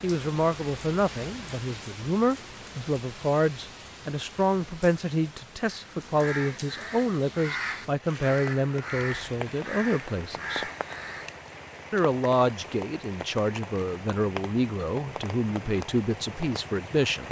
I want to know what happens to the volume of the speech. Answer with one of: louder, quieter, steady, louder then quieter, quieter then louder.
steady.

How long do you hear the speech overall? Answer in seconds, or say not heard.
16 s.